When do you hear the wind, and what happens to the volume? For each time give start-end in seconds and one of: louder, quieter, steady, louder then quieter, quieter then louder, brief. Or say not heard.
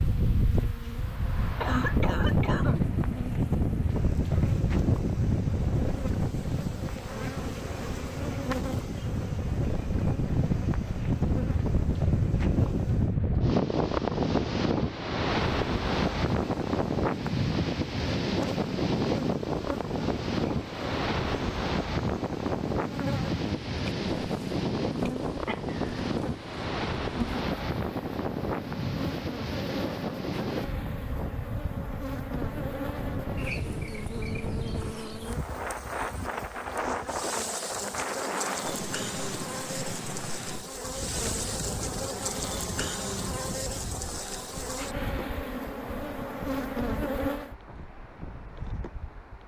0.0-49.4 quieter.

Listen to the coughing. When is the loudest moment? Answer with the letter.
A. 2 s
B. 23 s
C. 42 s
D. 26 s
A.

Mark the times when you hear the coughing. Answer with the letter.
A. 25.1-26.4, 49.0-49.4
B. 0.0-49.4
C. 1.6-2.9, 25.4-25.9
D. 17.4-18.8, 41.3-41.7
C.